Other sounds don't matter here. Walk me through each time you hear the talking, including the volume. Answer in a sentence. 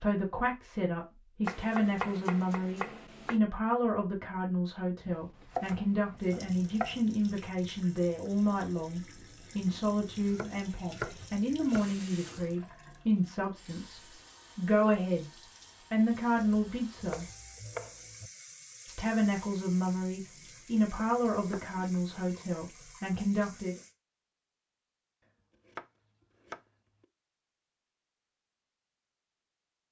The talking can be heard from 0.0 to 15.3 s, at a steady volume; briefly from 15.9 to 17.3 s; and from 18.9 to 23.8 s, at a steady volume.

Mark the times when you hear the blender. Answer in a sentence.
The blender can't be heard in this clip.